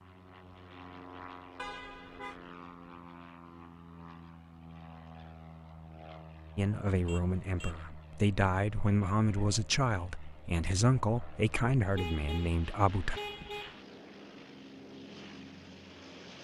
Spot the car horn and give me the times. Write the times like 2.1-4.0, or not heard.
1.6-2.4, 7.0-7.8, 11.9-13.8.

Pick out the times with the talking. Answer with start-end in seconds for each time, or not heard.
6.5-13.2.